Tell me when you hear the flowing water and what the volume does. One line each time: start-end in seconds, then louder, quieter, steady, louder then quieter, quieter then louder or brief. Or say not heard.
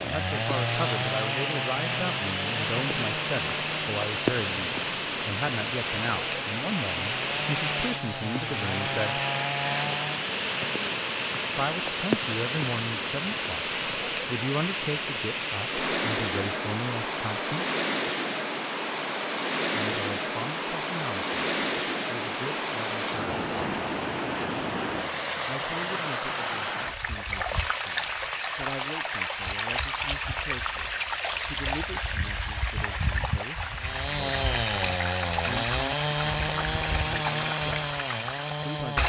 0.0-39.0 steady.